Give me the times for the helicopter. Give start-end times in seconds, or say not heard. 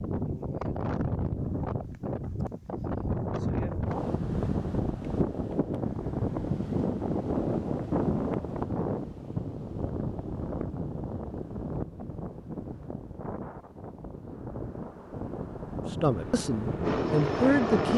16.1-17.9.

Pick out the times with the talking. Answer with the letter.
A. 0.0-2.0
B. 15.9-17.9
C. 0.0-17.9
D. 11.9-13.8
B.